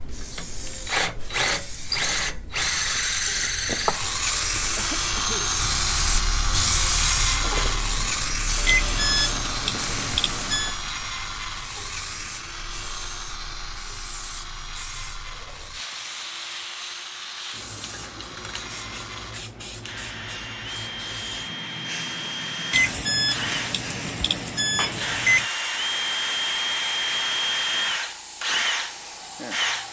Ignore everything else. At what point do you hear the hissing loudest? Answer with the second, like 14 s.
7 s.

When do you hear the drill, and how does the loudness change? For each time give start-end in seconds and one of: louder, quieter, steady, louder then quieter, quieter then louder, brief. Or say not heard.
0.0-29.8 quieter then louder.